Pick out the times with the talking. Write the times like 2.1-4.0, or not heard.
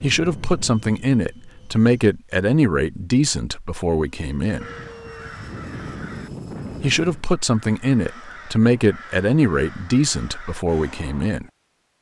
0.0-4.7, 6.8-11.4.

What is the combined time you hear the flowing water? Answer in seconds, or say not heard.
not heard.